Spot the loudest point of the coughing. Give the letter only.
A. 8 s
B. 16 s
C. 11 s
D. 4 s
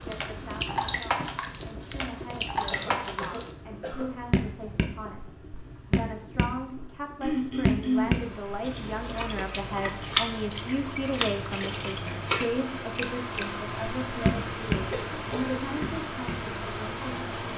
A.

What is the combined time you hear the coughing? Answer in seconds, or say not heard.
3 s.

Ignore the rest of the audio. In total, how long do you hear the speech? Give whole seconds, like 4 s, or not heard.
17 s.